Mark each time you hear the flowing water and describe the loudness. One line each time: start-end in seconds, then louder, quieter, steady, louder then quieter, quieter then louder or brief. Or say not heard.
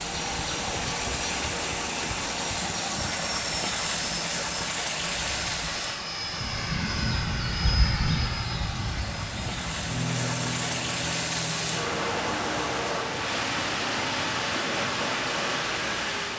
0.0-16.3 quieter then louder.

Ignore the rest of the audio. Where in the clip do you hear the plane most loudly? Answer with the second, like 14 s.
8 s.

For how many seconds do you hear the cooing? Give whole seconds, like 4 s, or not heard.
not heard.